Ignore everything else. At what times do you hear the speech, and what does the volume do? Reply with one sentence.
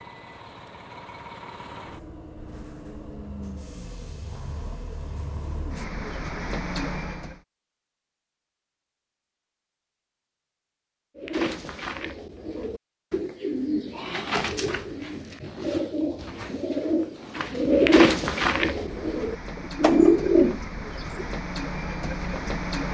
The speech can't be heard in this clip.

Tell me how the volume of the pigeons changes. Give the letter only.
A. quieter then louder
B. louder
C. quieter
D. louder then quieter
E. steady
B.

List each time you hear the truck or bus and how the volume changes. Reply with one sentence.
The truck or bus can be heard from 0.0 to 7.4 s, getting louder; and from 18.6 to 22.9 s, getting louder.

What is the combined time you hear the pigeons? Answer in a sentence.
You can hear the pigeons for 10 seconds altogether.